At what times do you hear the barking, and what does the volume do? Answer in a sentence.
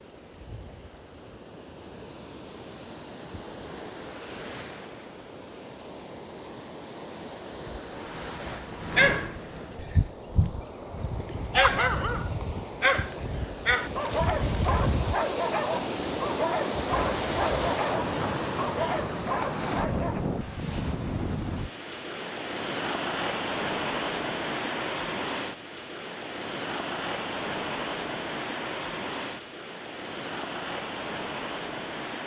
You can hear the barking from 8.9 to 20.2 s, getting louder then quieter.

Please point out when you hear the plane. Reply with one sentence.
The plane can be heard from 8.1 to 9.9 s.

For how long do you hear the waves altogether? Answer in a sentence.
You can hear the waves for 32 seconds altogether.